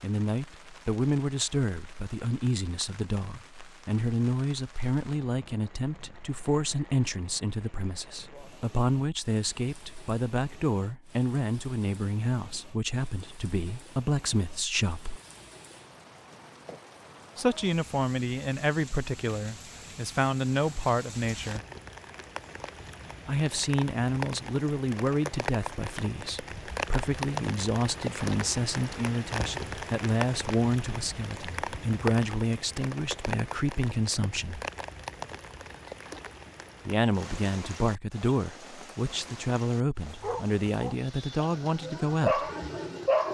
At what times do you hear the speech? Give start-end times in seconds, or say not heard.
0.0-15.2, 17.4-21.6, 23.2-34.6, 36.9-42.5.